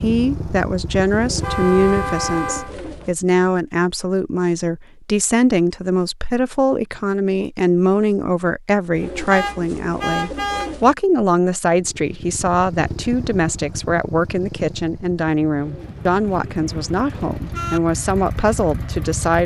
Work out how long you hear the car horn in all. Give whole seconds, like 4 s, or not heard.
5 s.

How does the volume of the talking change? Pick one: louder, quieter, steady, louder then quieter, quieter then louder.
steady.